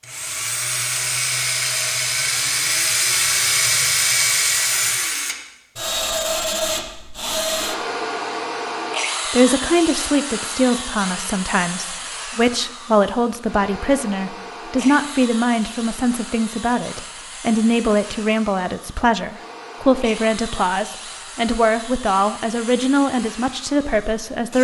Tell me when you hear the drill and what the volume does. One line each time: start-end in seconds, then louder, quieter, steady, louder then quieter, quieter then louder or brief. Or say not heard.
0.0-24.5 quieter.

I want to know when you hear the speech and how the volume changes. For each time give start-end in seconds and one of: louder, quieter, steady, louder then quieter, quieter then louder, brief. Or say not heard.
9.3-24.5 steady.